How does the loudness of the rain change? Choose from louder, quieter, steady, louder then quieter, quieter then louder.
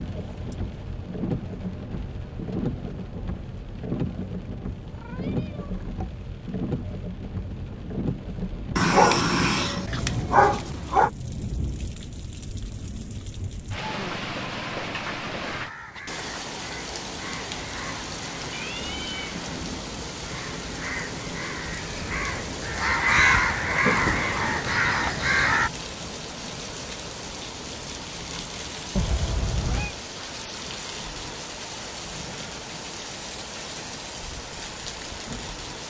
steady.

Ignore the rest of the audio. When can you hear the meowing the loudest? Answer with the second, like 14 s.
29 s.